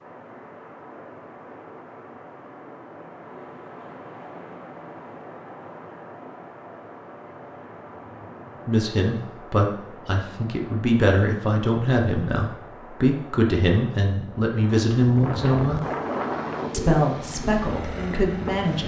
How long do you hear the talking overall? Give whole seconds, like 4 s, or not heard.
9 s.